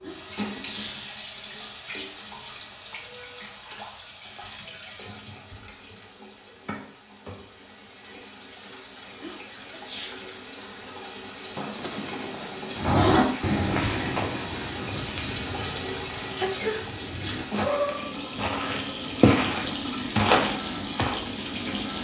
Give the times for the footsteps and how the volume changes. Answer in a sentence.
The footsteps can be heard from 12.8 to 21.2 s, getting quieter then louder.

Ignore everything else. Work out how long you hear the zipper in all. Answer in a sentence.
The zipper can be heard for 2 seconds in total.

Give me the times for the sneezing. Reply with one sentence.
The sneezing can be heard from 0.1 to 1.0 s, from 9.2 to 10.2 s and from 16.4 to 16.9 s.